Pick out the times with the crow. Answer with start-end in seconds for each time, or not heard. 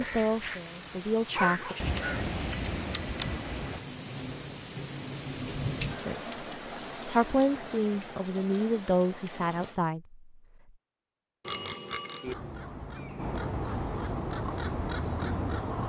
0.0-2.3, 12.2-15.8.